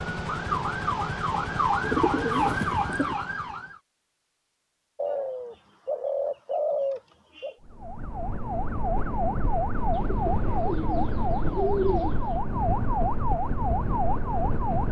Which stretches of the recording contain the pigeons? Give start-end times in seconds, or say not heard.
1.8-3.1, 5.0-7.5, 9.9-12.4.